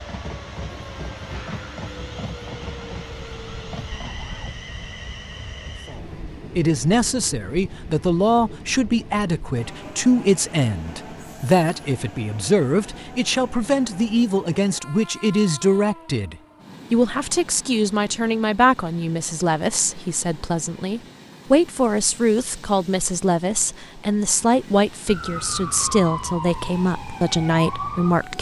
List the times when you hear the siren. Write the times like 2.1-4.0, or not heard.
0.0-4.5, 25.1-28.3.